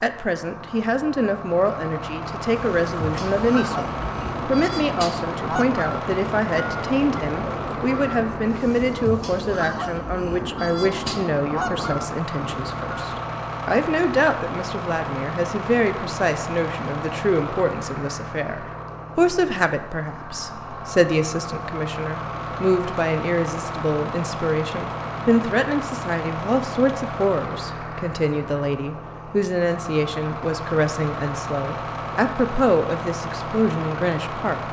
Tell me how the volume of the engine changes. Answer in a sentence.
The volume of the engine stays about the same.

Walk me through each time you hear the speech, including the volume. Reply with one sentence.
You can hear the speech from 0.0 to 34.6 s, at a steady volume.